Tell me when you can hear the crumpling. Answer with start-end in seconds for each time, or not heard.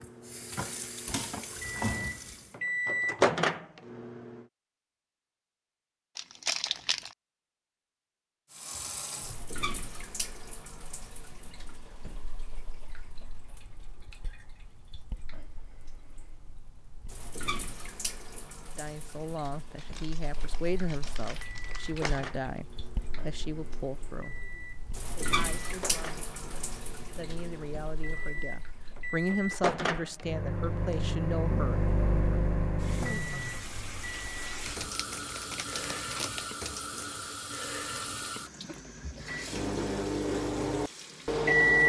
6.2-7.2, 19.8-22.3, 34.6-36.5.